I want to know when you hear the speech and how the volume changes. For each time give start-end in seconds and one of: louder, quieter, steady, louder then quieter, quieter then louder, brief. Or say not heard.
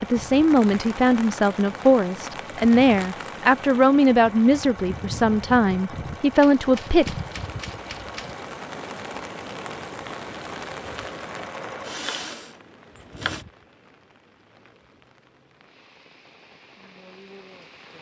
0.0-7.2 steady.